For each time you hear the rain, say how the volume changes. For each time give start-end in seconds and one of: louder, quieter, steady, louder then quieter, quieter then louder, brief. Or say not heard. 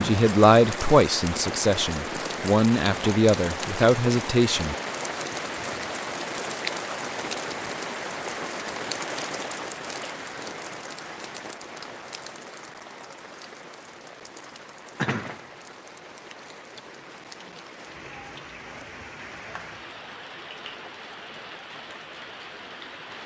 0.0-23.2 quieter.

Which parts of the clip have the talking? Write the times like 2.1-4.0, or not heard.
0.0-4.8.